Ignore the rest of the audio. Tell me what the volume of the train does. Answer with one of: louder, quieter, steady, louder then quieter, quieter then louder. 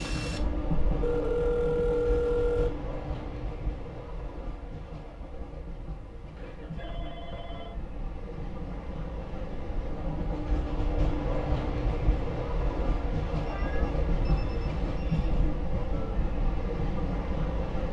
quieter then louder.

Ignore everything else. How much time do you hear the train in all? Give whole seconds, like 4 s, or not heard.
18 s.